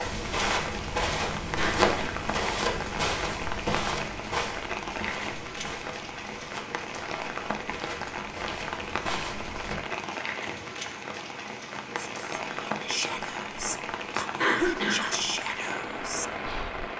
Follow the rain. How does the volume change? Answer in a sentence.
The loudness of the rain stays about the same.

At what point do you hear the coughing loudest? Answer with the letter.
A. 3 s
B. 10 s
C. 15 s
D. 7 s
C.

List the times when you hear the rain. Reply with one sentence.
You can hear the rain from 0.0 to 16.9 s.